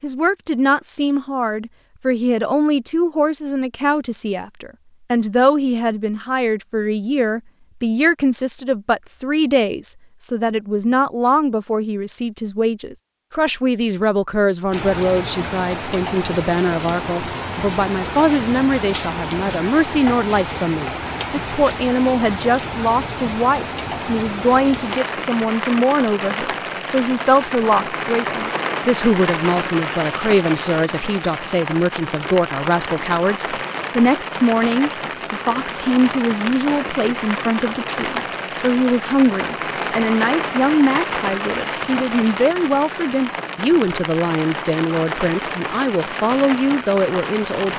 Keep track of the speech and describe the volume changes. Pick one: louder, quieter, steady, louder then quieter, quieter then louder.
steady.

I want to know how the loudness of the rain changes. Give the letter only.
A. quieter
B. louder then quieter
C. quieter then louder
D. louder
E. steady
E.